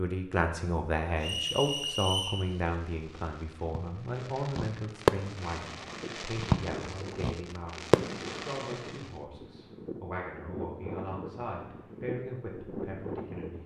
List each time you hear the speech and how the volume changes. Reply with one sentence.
The speech can be heard from 0.0 to 13.6 s, getting quieter.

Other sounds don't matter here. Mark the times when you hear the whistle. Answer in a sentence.
The whistle can be heard from 1.2 to 2.5 s.